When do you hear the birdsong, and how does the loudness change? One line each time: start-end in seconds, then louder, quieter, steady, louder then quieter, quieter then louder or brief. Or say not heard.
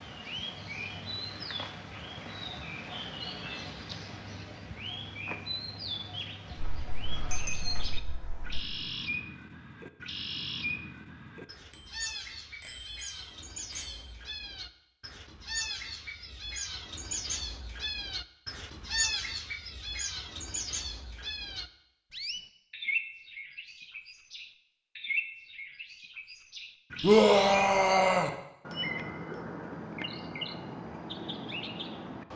0.0-32.3 steady.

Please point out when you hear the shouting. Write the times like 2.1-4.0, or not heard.
27.0-28.3.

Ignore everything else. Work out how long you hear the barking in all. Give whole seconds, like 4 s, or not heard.
not heard.